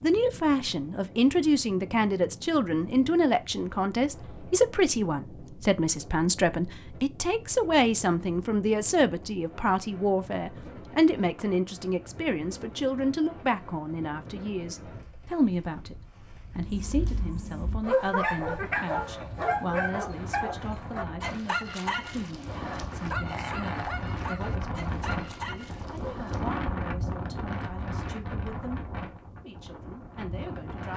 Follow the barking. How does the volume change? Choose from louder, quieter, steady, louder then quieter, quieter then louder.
quieter.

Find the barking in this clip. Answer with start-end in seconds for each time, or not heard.
16.6-26.4.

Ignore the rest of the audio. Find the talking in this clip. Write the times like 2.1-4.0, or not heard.
0.0-30.9.